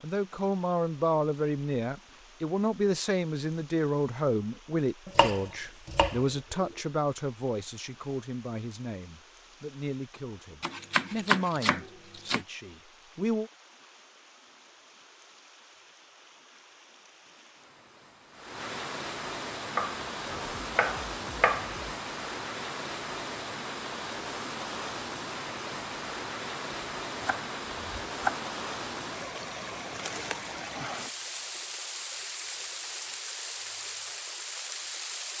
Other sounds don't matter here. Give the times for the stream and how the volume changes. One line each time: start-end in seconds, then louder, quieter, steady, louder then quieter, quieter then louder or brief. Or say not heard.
0.0-35.3 louder.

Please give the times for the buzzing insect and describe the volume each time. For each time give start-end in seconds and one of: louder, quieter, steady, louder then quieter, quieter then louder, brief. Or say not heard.
not heard.